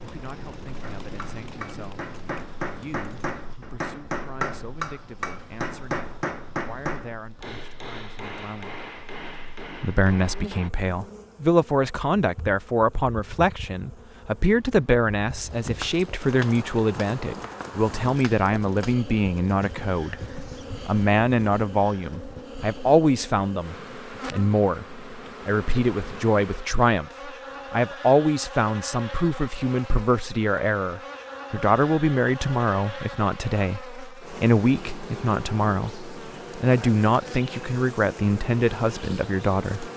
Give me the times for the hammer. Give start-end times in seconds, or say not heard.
0.8-10.7.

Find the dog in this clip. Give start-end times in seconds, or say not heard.
not heard.